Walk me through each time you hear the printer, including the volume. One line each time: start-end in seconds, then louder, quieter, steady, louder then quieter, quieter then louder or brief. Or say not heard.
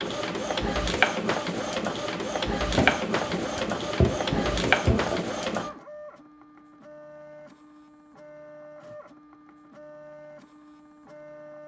0.0-11.6 quieter.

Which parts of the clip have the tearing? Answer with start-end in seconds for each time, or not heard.
2.8-5.2.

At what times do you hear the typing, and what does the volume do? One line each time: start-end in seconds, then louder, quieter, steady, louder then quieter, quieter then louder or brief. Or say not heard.
not heard.